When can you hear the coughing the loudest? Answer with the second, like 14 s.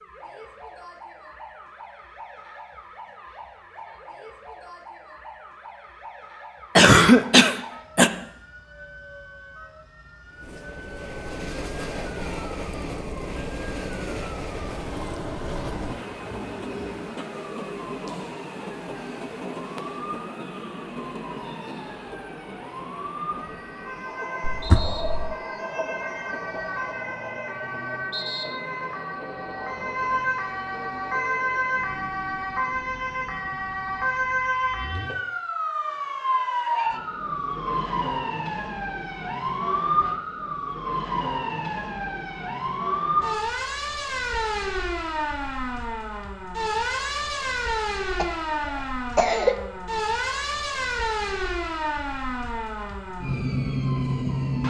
7 s.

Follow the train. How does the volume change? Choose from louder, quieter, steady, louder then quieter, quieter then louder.
quieter.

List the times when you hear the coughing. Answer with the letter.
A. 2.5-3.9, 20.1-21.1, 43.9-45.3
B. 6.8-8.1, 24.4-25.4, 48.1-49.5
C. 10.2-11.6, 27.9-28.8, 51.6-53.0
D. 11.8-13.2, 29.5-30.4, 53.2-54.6
B.